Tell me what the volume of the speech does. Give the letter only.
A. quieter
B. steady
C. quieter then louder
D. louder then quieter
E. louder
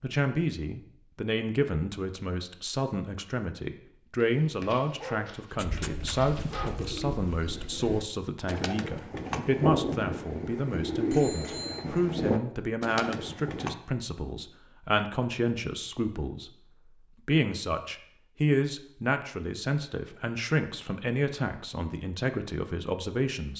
B.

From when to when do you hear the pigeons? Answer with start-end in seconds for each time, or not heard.
5.5-13.8.